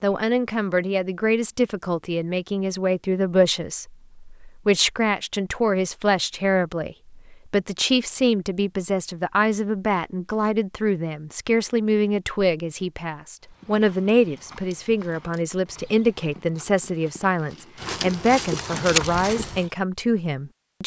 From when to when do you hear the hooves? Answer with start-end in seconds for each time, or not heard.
13.4-19.7.